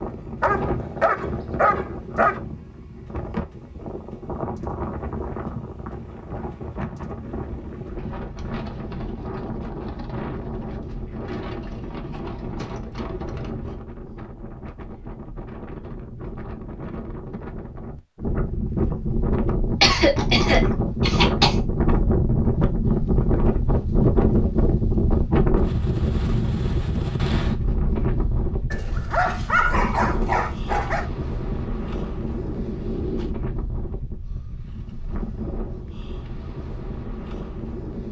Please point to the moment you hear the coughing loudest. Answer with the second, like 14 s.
20 s.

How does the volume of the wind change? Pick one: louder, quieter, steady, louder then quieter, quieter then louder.
louder then quieter.